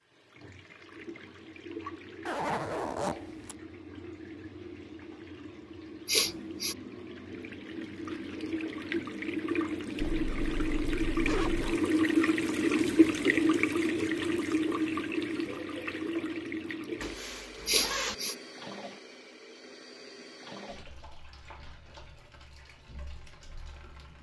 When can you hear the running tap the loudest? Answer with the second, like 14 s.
13 s.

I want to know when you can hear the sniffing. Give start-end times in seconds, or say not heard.
6.0-6.8, 17.6-18.4.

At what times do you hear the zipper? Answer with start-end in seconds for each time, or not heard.
2.2-3.5, 10.0-11.8, 17.0-18.1.